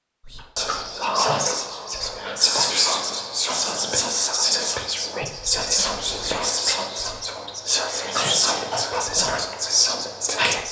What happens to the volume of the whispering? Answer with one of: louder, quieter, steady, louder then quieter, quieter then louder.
steady.